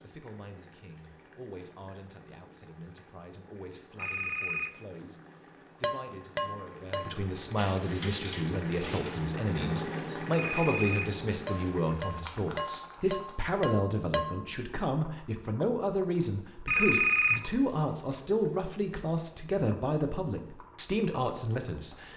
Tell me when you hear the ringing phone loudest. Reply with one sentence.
The loudest moment of the ringing phone is at 17 seconds.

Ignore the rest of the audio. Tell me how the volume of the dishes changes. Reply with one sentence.
The volume of the dishes goes down, then up.